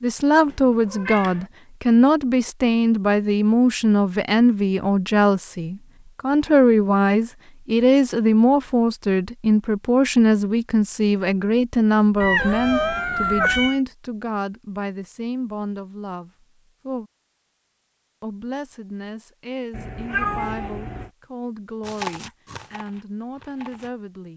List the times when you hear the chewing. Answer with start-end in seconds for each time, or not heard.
21.8-23.9.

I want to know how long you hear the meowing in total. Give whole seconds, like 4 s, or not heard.
4 s.